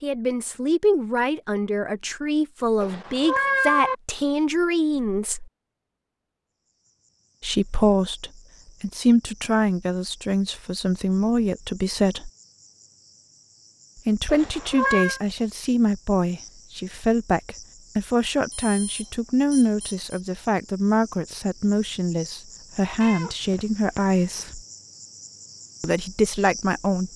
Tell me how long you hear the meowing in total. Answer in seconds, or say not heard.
3 s.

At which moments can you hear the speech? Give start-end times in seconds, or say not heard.
0.0-5.5, 7.4-12.3, 14.1-24.6, 25.8-27.1.